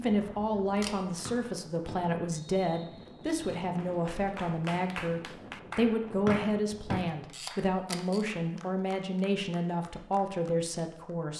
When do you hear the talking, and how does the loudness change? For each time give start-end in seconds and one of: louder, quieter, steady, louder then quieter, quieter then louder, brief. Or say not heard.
0.0-11.3 steady.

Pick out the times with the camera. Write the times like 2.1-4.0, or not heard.
0.7-1.1, 6.9-8.2.